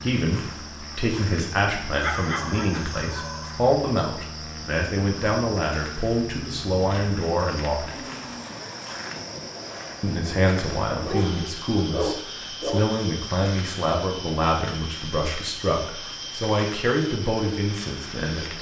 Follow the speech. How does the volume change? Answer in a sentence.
The volume of the speech stays about the same.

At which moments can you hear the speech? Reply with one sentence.
The speech can be heard from 0.0 to 8.0 s and from 10.0 to 18.5 s.